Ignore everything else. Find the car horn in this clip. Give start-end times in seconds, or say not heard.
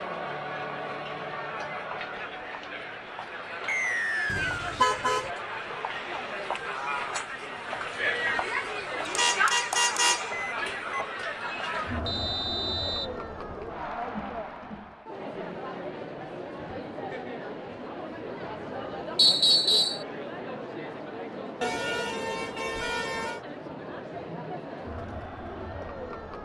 4.2-5.3, 9.0-11.1, 21.6-23.4.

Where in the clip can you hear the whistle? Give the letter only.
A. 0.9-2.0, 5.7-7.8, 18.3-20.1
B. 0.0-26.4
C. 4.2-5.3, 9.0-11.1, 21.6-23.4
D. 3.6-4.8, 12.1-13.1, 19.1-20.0
D.